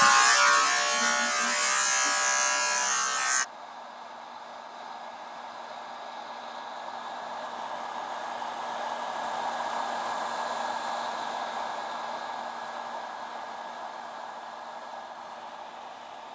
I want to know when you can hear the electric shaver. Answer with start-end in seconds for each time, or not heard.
0.0-3.5.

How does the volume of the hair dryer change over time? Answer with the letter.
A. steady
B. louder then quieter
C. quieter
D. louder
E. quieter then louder
B.